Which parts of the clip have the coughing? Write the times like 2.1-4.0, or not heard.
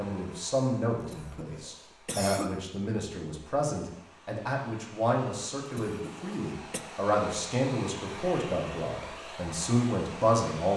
1.0-2.5, 5.7-6.8.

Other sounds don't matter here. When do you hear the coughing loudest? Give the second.
2 s.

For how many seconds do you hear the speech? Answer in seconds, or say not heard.
11 s.